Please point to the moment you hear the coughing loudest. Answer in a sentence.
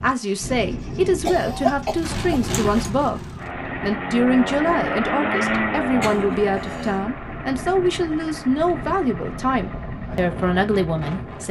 The volume of the coughing peaks at 2 seconds.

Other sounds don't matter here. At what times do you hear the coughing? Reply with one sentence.
The coughing can be heard from 1.2 to 2.9 s and from 5.8 to 7.0 s.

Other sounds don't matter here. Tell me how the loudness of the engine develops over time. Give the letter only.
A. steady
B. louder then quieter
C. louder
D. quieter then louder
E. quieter
B.